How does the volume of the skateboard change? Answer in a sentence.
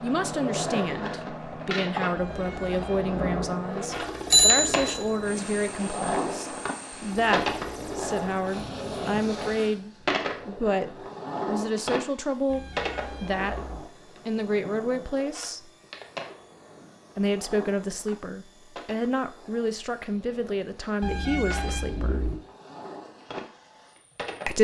The loudness of the skateboard goes down.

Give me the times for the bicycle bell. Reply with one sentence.
The bicycle bell can be heard from 4.3 to 5.0 s.